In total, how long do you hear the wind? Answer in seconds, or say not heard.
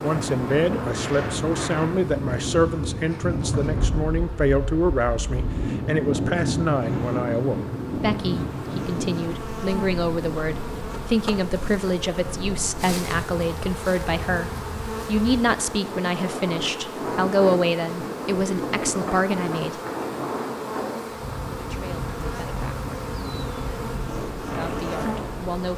26 s.